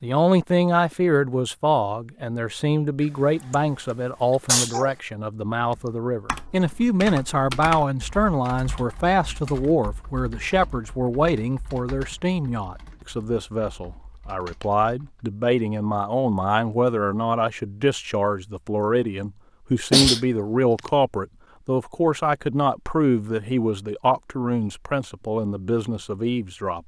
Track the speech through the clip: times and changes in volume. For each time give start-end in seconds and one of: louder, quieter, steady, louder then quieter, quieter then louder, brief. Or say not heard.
0.0-26.8 steady.